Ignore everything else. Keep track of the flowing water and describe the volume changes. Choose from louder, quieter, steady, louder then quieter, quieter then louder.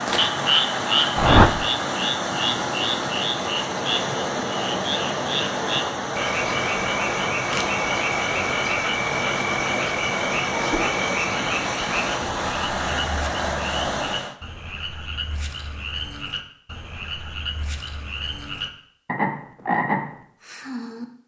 steady.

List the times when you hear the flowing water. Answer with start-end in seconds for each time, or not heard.
0.0-14.3.